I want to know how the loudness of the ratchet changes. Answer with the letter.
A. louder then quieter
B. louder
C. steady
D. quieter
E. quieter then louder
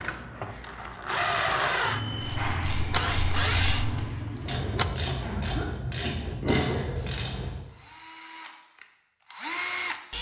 B.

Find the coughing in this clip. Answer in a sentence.
The coughing can be heard from 5.2 to 5.8 s.